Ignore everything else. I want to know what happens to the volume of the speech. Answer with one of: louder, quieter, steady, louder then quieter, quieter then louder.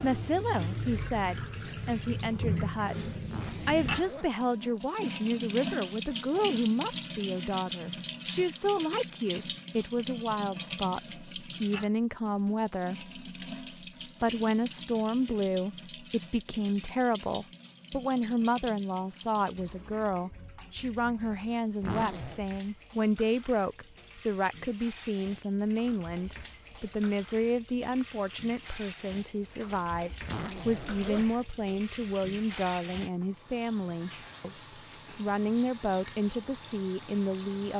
steady.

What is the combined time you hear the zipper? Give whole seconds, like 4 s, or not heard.
3 s.